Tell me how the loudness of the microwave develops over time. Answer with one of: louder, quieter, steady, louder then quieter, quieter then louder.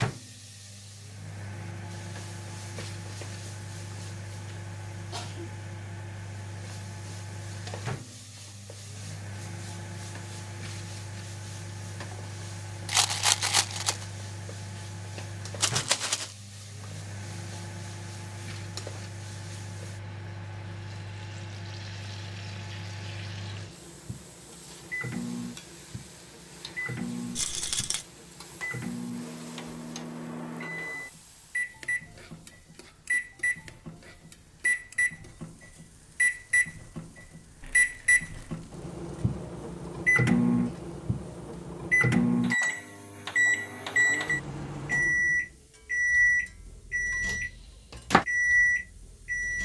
louder.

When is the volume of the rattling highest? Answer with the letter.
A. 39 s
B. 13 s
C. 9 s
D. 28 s
B.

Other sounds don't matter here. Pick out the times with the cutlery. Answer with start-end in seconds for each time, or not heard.
not heard.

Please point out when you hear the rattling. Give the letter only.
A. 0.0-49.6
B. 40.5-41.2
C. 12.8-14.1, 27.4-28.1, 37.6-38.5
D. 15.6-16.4
C.